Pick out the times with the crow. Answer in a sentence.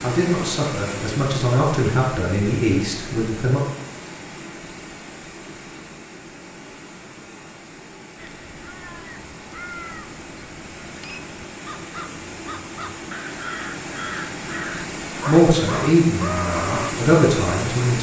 The crow can be heard from 8.2 to 16.9 s.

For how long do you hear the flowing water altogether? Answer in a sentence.
You can hear the flowing water for 18 seconds altogether.